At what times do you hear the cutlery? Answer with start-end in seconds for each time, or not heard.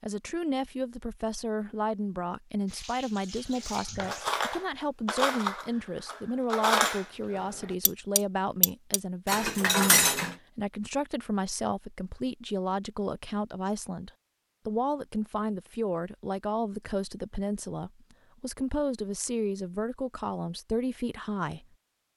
3.6-10.3.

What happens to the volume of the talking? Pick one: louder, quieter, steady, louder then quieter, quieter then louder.
steady.